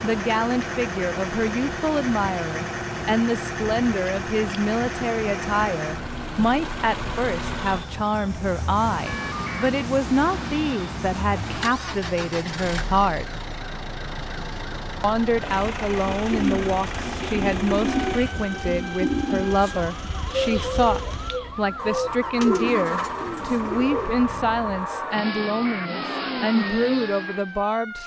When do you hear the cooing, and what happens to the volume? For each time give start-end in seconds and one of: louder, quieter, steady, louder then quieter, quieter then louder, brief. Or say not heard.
16.1-24.1 steady.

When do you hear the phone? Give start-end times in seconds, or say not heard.
9.1-9.7, 25.2-25.9.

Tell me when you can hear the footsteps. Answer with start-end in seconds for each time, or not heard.
not heard.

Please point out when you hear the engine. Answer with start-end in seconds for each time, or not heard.
0.0-28.0.